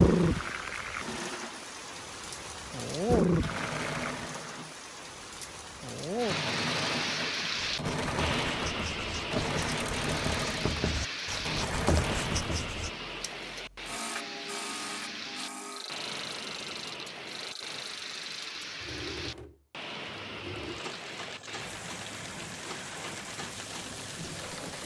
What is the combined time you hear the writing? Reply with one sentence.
The writing can be heard for 5 seconds in total.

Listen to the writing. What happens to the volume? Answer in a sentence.
The loudness of the writing goes up.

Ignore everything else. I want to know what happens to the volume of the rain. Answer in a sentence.
The volume of the rain goes down.